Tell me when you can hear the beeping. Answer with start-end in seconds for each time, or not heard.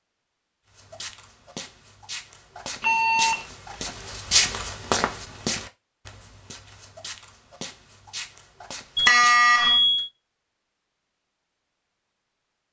2.8-3.5, 8.9-10.1.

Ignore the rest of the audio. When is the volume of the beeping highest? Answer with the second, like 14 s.
9 s.